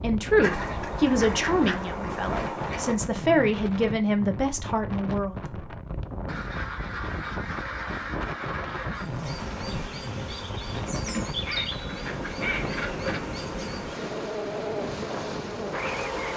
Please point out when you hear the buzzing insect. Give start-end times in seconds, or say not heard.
8.9-16.3.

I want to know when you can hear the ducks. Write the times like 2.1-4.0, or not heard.
0.4-3.0, 6.2-9.1, 11.1-13.2.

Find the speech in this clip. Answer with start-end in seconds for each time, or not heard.
0.0-5.5.